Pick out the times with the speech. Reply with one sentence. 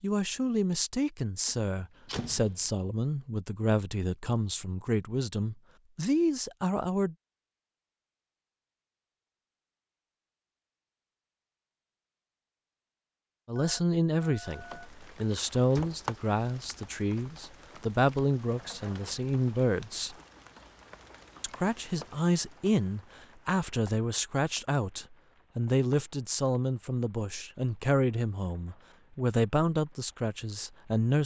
The speech can be heard from 0.0 to 7.2 s, from 13.4 to 20.1 s and from 21.4 to 31.2 s.